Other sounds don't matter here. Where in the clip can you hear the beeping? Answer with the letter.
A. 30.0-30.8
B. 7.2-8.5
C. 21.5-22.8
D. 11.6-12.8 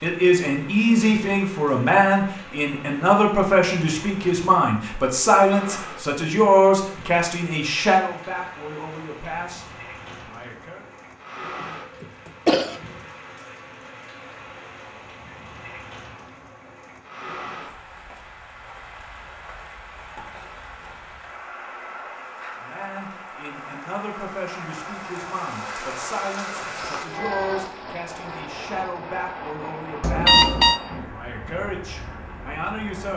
A.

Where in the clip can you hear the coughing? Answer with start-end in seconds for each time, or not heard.
11.6-12.8.